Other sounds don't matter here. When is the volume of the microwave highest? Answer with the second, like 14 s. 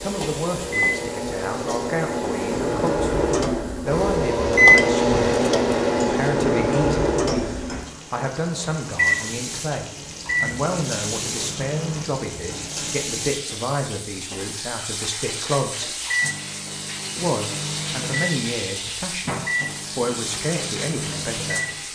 5 s.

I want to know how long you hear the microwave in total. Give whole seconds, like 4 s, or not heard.
18 s.